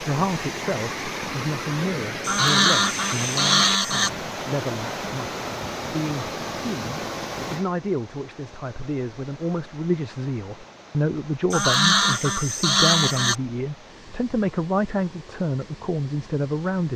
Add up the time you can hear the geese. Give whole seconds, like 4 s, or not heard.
4 s.